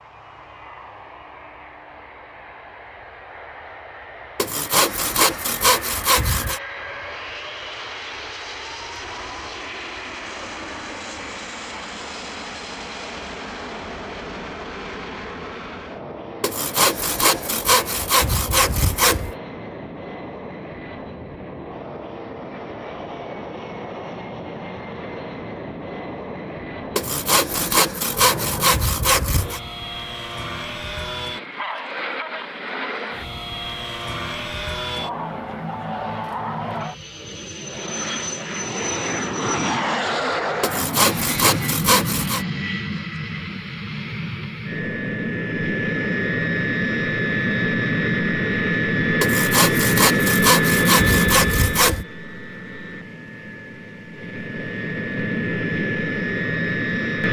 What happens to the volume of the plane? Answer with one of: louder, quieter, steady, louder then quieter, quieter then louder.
louder.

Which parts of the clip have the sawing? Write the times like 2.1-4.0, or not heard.
4.3-6.6, 16.4-19.3, 26.9-29.6, 40.6-42.5, 49.2-52.0.